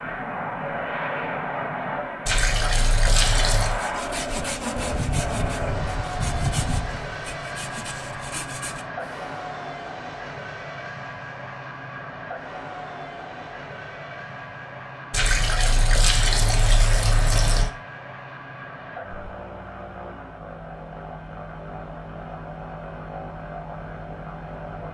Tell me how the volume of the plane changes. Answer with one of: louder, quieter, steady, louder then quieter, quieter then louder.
quieter.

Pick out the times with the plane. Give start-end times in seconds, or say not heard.
0.0-24.8.